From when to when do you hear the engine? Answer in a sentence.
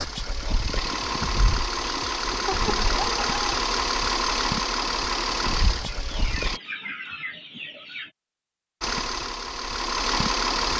You can hear the engine from 0.0 to 6.6 s and from 8.8 to 10.7 s.